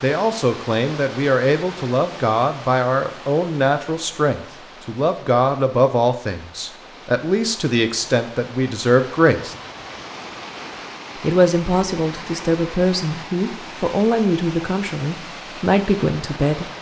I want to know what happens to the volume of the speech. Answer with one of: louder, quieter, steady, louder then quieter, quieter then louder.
steady.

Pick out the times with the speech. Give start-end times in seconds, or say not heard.
0.0-9.6, 11.2-16.7.